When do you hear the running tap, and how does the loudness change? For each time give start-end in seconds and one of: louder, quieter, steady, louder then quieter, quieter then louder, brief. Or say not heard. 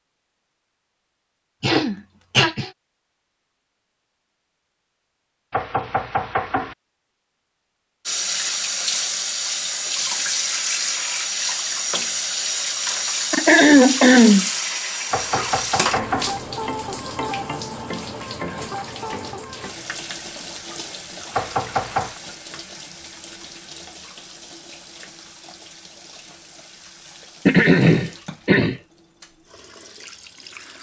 8.1-30.7 quieter.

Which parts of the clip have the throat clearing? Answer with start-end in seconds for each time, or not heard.
1.6-2.7, 13.3-14.4, 27.4-28.8.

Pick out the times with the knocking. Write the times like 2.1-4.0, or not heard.
5.5-6.8, 15.1-16.4, 21.3-22.2.